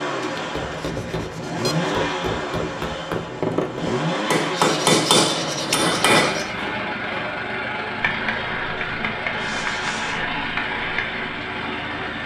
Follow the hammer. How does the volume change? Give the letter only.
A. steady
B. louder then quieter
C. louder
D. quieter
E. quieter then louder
B.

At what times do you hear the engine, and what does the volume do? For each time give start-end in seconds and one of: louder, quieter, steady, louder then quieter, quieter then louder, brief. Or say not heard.
0.0-12.2 steady.